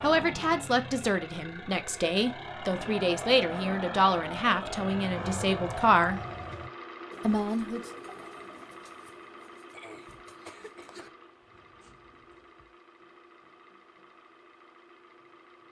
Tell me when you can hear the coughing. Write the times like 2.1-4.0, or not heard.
9.7-11.1.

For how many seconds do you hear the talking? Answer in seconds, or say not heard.
7 s.